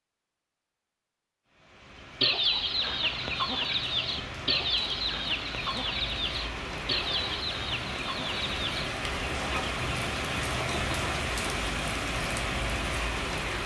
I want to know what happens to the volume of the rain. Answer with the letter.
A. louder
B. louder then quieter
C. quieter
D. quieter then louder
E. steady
A.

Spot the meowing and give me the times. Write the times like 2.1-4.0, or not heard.
not heard.